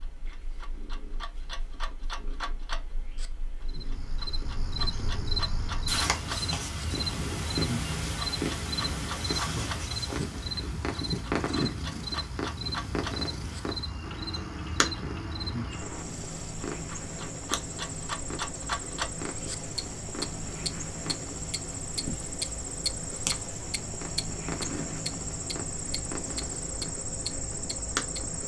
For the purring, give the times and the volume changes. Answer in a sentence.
You can hear the purring from 0.0 to 28.2 s, getting louder then quieter.